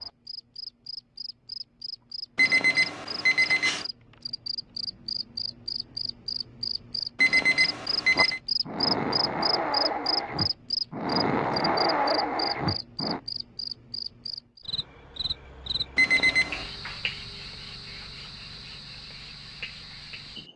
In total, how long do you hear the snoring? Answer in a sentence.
You can hear the snoring for 5 seconds altogether.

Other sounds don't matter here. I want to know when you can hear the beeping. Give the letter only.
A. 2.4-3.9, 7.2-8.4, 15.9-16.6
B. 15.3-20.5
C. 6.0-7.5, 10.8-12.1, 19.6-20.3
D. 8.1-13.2
A.